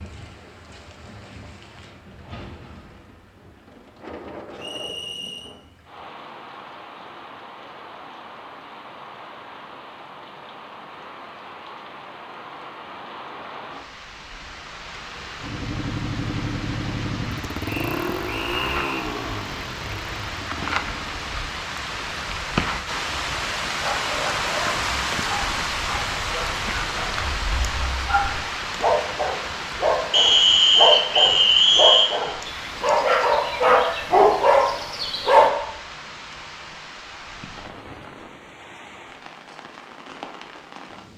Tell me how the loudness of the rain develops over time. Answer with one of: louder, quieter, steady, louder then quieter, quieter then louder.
louder then quieter.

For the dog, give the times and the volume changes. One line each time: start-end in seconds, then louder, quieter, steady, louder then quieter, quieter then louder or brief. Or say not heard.
23.6-35.5 louder.